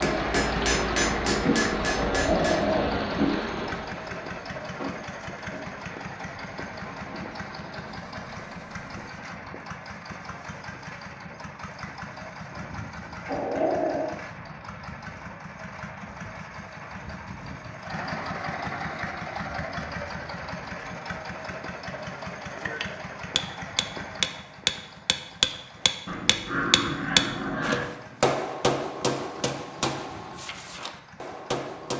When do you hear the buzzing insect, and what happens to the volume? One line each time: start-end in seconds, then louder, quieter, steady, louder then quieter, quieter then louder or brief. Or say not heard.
0.0-9.1 quieter.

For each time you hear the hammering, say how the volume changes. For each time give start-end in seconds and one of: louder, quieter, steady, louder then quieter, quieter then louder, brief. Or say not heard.
0.0-2.6 brief
22.6-31.9 quieter.